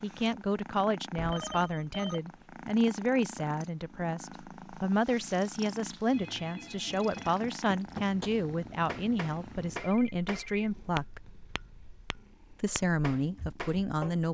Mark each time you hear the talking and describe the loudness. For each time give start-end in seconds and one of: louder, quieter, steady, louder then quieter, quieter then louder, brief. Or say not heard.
0.0-11.2 steady
12.6-14.2 brief.